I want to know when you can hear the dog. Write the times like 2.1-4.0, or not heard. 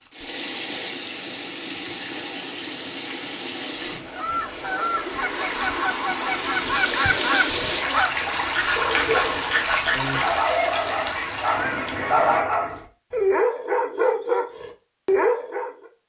8.8-15.7.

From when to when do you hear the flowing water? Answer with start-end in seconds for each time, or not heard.
0.0-12.4.